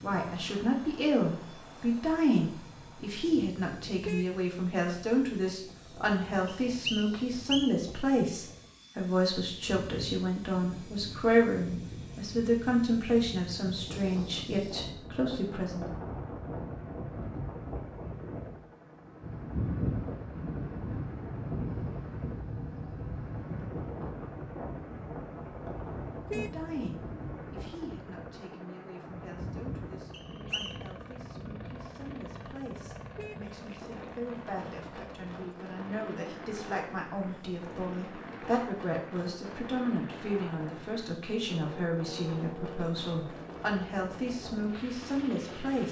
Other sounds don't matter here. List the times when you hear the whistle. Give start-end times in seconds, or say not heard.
6.7-7.8, 30.1-30.9.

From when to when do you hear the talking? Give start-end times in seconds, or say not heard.
0.0-15.9, 26.3-45.8.